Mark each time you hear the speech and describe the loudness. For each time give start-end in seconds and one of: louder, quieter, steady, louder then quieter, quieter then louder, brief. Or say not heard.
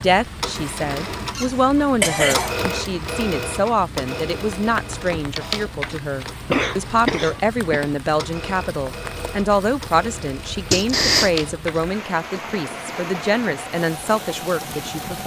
0.0-15.2 steady.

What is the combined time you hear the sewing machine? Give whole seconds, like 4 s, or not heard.
15 s.